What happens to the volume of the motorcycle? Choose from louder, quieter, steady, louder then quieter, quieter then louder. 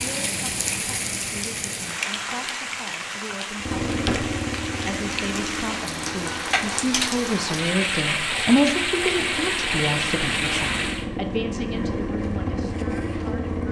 quieter then louder.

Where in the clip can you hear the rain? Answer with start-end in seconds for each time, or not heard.
0.0-11.1.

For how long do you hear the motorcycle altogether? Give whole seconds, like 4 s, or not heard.
10 s.